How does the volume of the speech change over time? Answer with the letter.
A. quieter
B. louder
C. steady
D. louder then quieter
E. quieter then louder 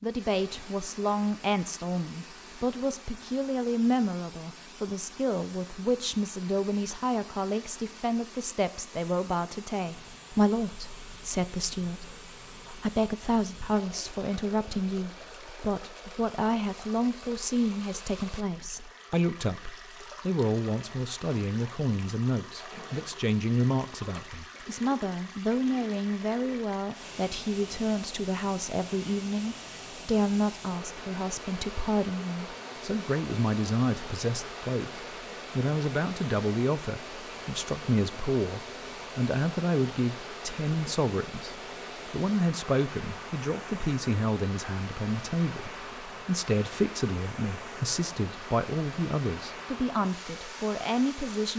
C.